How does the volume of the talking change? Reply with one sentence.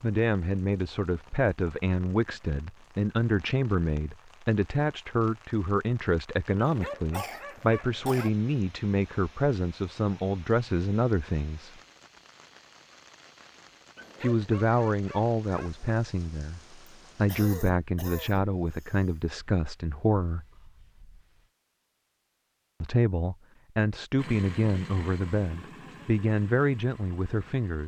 The volume of the talking stays about the same.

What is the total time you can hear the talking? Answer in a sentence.
The talking can be heard for 23 seconds in total.